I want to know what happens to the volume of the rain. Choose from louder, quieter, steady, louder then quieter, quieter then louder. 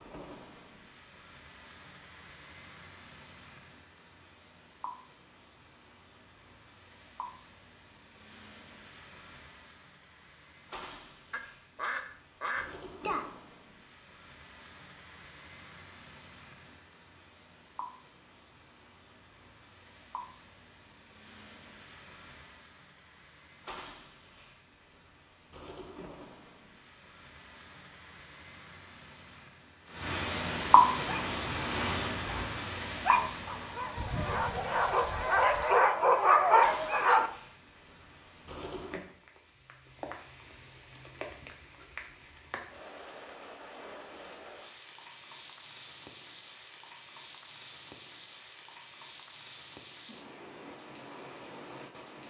louder then quieter.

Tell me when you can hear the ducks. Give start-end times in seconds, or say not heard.
11.3-13.3, 34.0-35.9.